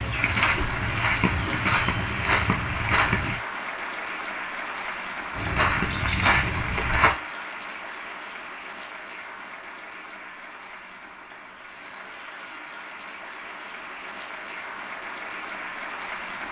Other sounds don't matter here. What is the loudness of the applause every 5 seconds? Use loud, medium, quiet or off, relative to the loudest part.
loud, loud, medium, loud.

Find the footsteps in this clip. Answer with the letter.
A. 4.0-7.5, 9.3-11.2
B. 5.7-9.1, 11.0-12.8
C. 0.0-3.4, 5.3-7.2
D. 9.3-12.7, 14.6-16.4
C.